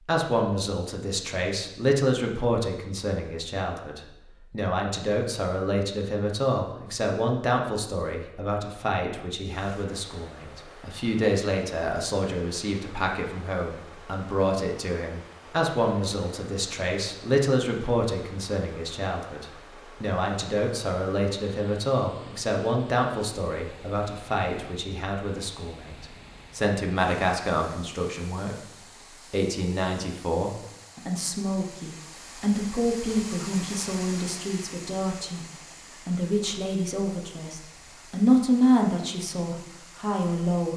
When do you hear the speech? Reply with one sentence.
The speech can be heard from 0.1 to 28.6 s and from 29.3 to 40.7 s.